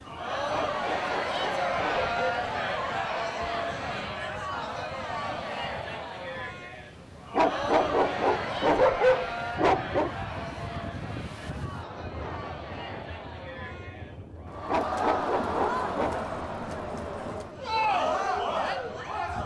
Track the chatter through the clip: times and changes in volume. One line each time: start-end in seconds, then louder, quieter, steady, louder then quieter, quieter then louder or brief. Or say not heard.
0.0-19.4 quieter then louder.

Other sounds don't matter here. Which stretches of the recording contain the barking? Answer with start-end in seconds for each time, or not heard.
0.5-2.2, 7.3-10.1, 14.7-16.2.